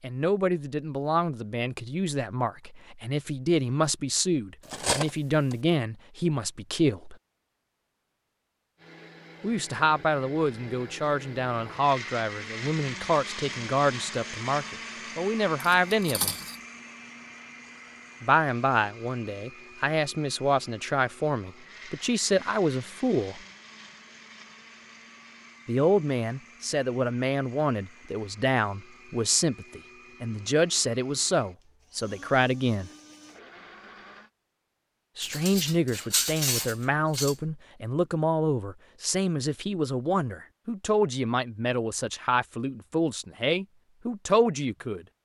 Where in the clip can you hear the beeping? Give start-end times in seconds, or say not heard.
not heard.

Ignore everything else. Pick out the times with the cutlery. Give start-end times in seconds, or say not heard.
4.7-5.5, 15.6-16.6, 35.2-37.4.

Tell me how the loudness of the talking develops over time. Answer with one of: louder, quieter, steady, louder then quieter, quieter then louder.
steady.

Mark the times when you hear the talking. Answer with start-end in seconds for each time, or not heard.
0.0-7.2, 9.4-16.4, 18.2-23.4, 25.6-32.9, 35.1-45.0.